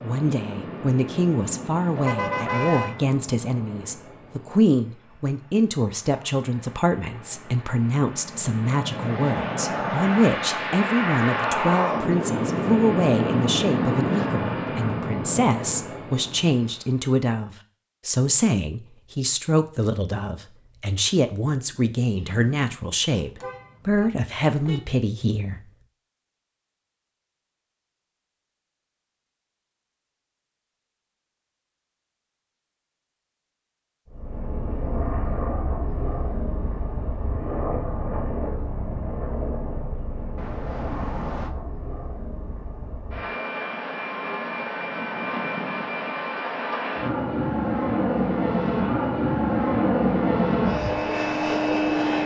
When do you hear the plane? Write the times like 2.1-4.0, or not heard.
0.0-16.9, 34.1-52.2.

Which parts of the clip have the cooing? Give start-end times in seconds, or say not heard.
not heard.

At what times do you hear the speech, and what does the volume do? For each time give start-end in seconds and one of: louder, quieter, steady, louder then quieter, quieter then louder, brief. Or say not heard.
0.0-25.6 steady.